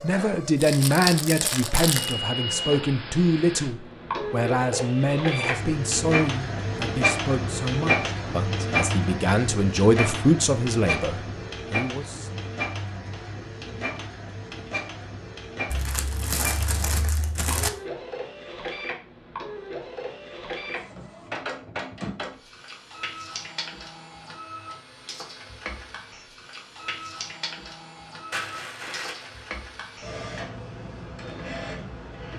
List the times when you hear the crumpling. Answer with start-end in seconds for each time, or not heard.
0.6-2.1, 15.7-17.7, 28.3-29.6.